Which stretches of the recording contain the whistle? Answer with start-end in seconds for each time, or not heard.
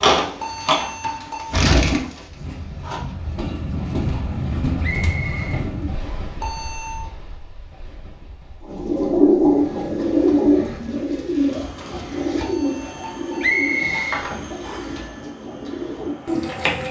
4.8-6.4, 13.4-15.0.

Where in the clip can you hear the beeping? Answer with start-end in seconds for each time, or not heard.
0.4-1.5, 6.4-7.0, 12.3-14.0.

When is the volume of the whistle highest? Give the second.
14 s.